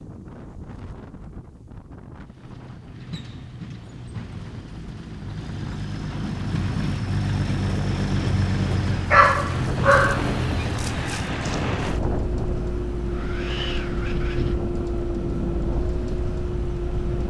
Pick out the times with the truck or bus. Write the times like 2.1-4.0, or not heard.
2.2-17.2.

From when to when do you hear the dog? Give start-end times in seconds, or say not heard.
9.1-10.8.